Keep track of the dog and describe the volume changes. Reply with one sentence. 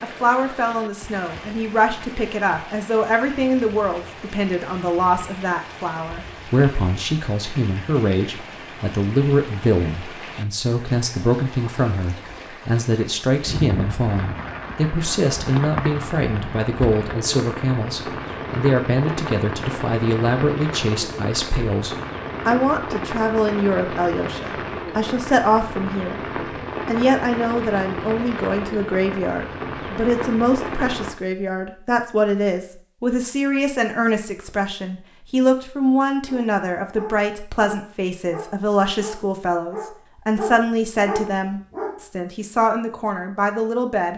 The loudness of the dog goes up.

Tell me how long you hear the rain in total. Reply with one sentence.
The rain can be heard for 31 seconds in total.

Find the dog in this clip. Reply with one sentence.
The dog can be heard from 36.2 to 42.0 s.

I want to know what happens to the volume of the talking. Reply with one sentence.
The loudness of the talking stays about the same.